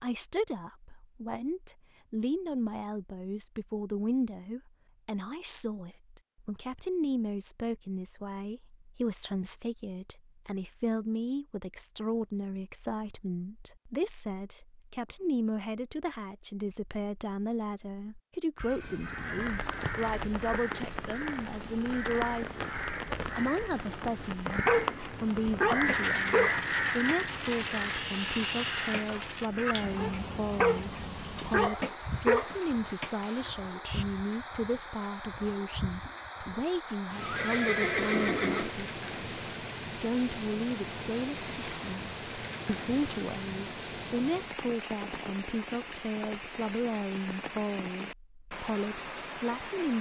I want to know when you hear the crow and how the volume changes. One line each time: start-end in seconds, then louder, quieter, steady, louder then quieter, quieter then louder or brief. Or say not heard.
18.8-30.0 louder then quieter.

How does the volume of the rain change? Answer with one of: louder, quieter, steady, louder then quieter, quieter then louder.
steady.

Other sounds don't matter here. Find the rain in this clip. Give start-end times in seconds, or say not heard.
19.4-49.9.